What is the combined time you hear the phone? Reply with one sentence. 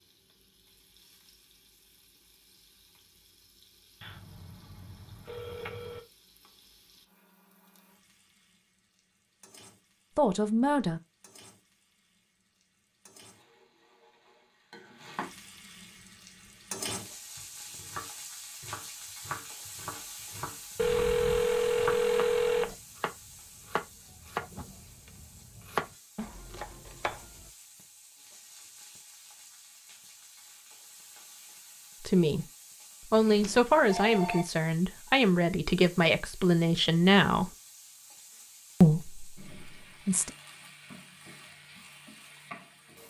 You can hear the phone for 5 seconds altogether.